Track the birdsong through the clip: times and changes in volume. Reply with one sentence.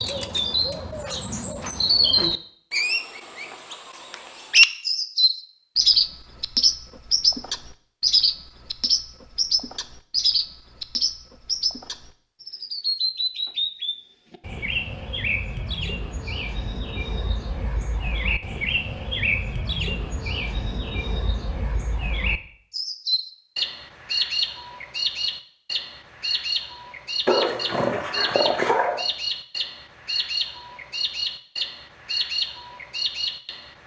You can hear the birdsong from 0.0 to 33.8 s, getting quieter.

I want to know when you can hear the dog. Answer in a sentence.
The dog can be heard from 27.2 to 29.1 s.